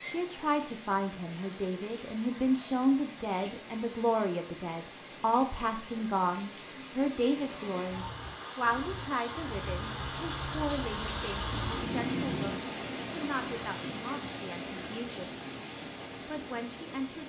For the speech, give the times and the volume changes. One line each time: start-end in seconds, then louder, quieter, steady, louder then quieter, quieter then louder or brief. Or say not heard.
0.0-17.2 quieter.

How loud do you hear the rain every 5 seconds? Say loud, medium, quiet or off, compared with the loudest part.
medium, medium, loud, medium.